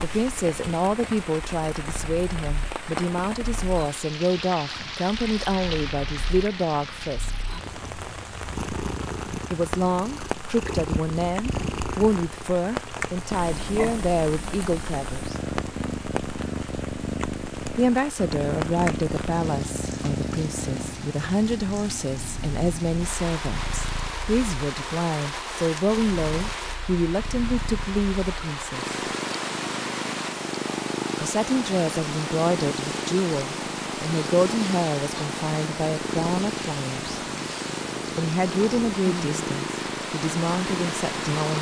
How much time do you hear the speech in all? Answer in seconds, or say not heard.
34 s.